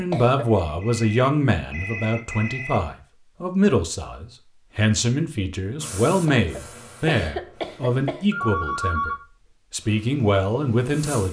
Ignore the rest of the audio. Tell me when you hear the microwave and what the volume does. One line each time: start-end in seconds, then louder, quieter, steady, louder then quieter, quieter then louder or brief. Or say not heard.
not heard.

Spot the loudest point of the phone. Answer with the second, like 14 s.
9 s.